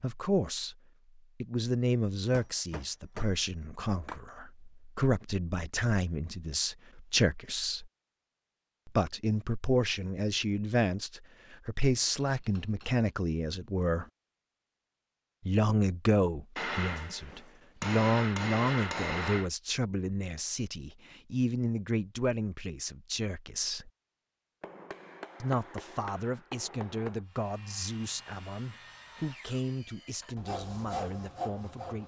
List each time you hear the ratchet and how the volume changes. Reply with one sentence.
The ratchet can't be heard in this clip.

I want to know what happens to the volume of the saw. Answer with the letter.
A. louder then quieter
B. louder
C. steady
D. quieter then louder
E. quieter
B.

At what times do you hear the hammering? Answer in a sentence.
The hammering can be heard from 2.3 to 4.3 s, from 12.2 to 13.1 s, from 16.6 to 19.5 s and from 24.6 to 27.2 s.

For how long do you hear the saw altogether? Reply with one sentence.
You can hear the saw for 5 seconds altogether.